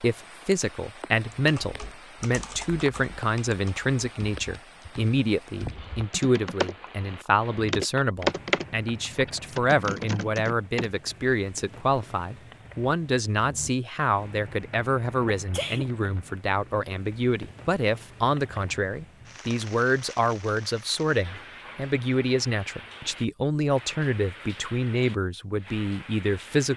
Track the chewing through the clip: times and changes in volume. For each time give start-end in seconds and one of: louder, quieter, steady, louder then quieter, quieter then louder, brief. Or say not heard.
not heard.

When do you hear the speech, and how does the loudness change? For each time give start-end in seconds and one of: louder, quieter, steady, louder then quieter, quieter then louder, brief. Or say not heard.
0.0-26.7 steady.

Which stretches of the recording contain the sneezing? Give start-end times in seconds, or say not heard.
15.2-15.8.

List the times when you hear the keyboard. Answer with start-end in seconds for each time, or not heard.
1.3-10.9.